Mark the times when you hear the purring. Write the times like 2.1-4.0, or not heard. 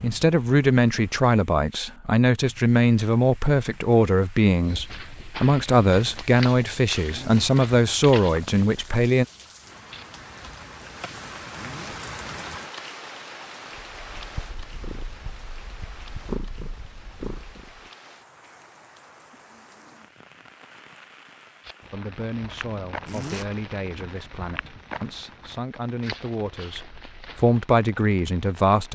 13.8-17.9.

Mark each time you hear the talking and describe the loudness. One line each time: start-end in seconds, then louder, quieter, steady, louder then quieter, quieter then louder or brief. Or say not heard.
0.0-9.2 steady
21.9-28.8 louder.